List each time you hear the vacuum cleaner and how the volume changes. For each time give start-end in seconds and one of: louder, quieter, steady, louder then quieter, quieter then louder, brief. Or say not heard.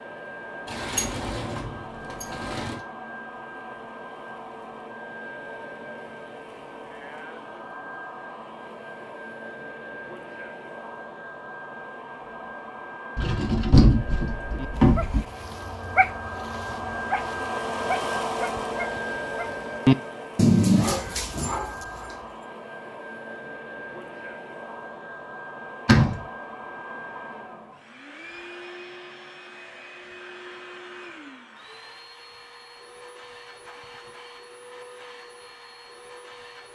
0.0-36.7 louder then quieter.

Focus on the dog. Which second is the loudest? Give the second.
21 s.